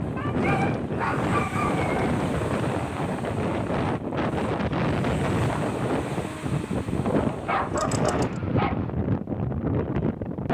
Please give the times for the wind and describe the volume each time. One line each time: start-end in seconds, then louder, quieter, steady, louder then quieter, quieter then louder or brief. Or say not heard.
0.0-10.4 steady.